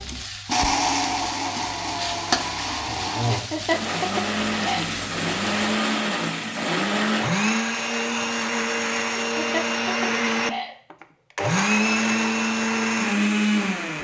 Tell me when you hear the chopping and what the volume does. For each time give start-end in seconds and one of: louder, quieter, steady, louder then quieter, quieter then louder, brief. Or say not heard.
not heard.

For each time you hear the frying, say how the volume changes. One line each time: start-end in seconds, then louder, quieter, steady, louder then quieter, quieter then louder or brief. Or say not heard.
0.0-5.7 louder then quieter.